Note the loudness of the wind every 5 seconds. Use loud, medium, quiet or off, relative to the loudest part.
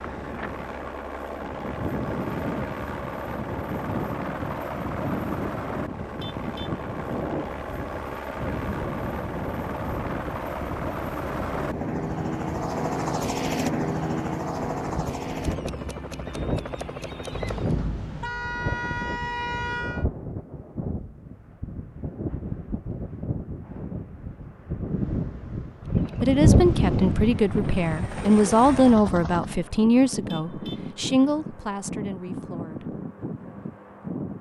medium, medium, medium, medium, medium, loud, medium.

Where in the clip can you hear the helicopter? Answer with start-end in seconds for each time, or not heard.
0.0-17.8, 25.8-29.6.